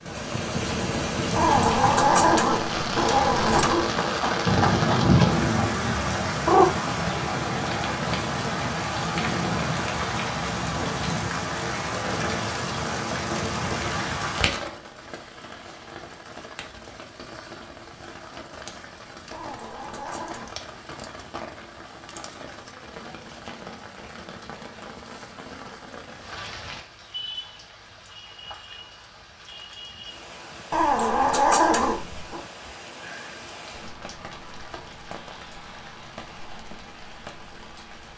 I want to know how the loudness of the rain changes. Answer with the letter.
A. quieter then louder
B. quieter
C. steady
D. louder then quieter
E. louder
B.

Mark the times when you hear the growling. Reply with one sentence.
You can hear the growling from 1.4 to 3.9 s, from 19.3 to 20.6 s and from 30.7 to 32.4 s.